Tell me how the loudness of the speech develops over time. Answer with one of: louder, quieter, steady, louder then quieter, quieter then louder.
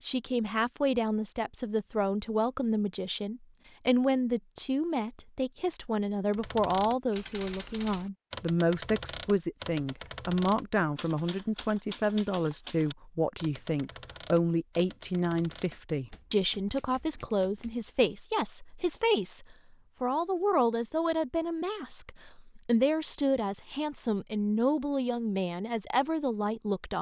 steady.